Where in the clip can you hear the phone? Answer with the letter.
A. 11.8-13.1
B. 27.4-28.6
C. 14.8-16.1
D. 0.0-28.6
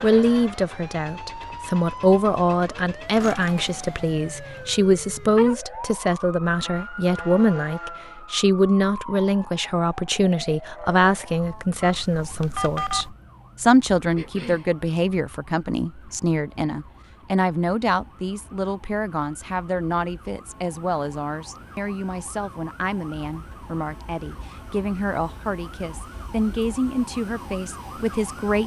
A.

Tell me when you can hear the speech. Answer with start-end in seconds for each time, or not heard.
0.0-28.6.